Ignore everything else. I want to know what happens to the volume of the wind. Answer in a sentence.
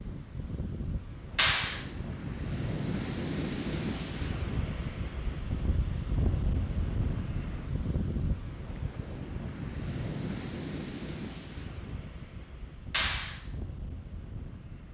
The volume of the wind goes down.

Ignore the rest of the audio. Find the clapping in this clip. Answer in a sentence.
The clapping can be heard from 1.4 to 1.8 s and from 12.9 to 13.4 s.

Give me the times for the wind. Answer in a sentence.
The wind can be heard from 0.0 to 14.9 s.